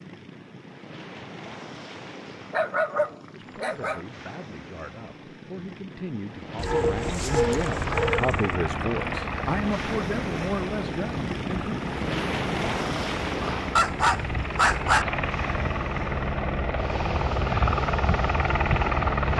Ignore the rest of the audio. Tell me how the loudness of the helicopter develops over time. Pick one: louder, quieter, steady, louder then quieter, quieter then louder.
quieter then louder.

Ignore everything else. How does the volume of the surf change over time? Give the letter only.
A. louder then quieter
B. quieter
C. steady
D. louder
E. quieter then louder
A.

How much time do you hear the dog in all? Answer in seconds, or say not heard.
5 s.